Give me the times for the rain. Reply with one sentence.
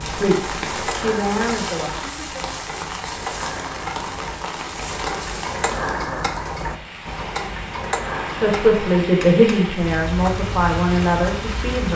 The rain can be heard from 0.0 to 11.9 s.